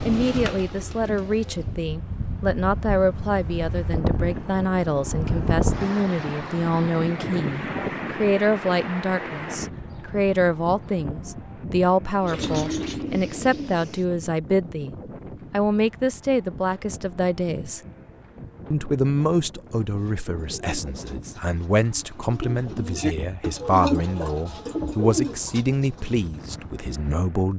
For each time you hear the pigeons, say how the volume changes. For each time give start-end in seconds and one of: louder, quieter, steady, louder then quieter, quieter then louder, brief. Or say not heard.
0.0-1.8 brief
12.2-14.2 brief
19.8-27.1 louder then quieter.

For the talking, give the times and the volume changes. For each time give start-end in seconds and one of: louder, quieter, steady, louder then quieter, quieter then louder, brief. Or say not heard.
0.1-17.8 steady
18.7-27.5 steady.